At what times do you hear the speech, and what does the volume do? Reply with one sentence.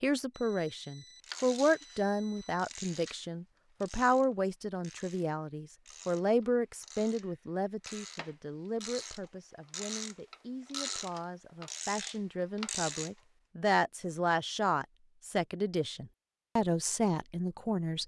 The speech can be heard from 0.0 to 18.0 s, getting quieter then louder.